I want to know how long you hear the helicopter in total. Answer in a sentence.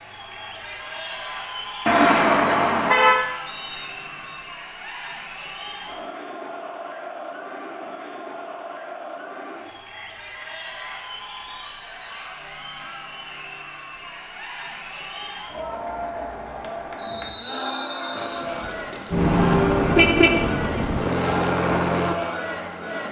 The helicopter can be heard for 5 seconds in total.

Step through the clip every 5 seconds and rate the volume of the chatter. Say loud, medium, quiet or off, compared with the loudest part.
medium, medium, medium, loud, loud.